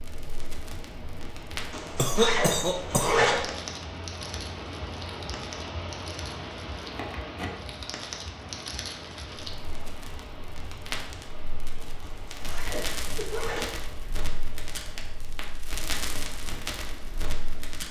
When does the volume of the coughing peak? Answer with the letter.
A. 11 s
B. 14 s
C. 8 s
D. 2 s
D.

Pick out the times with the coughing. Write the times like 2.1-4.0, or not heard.
1.9-3.3, 12.7-13.8.